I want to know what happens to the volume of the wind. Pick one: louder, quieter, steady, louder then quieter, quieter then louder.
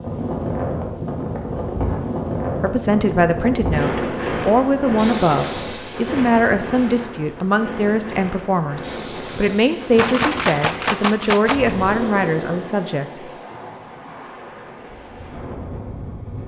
quieter.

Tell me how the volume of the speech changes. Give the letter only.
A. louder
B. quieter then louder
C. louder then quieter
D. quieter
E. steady
E.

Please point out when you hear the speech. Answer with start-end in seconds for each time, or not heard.
2.6-13.2.